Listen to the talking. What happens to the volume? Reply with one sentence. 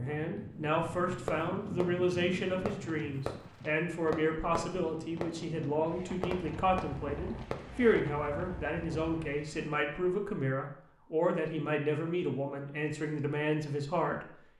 The volume of the talking stays about the same.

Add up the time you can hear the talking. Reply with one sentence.
The talking can be heard for 14 seconds in total.